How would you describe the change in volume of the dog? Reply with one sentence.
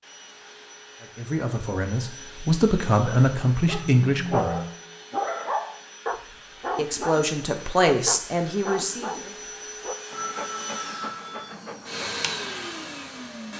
The volume of the dog goes down.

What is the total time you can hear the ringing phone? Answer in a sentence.
You can hear the ringing phone for 3 seconds altogether.